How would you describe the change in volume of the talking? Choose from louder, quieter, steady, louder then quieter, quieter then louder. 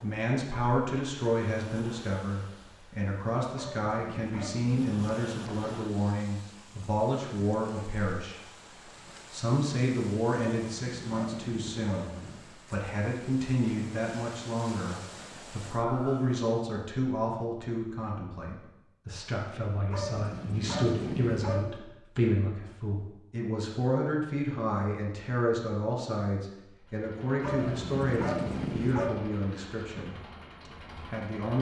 steady.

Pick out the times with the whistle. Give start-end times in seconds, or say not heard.
not heard.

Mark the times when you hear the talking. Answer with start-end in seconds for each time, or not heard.
0.0-8.6, 9.3-31.5.